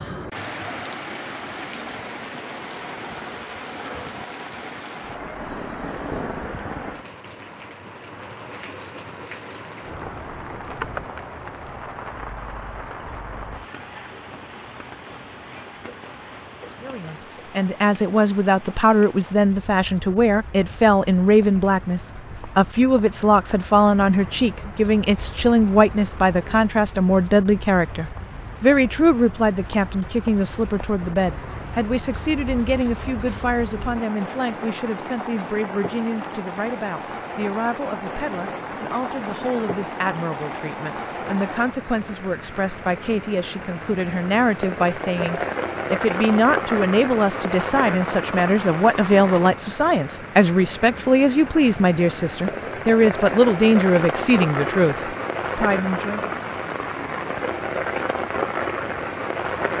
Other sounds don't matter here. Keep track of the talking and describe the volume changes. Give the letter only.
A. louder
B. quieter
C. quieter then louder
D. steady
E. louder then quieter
C.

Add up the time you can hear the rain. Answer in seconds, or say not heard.
60 s.